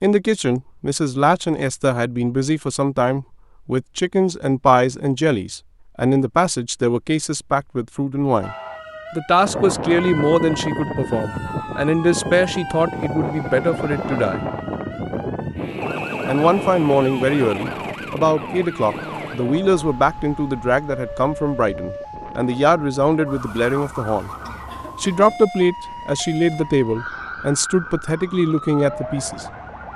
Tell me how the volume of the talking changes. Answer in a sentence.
The volume of the talking stays about the same.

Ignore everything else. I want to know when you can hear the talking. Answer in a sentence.
You can hear the talking from 0.0 to 14.4 s, from 16.2 to 24.3 s and from 25.0 to 29.4 s.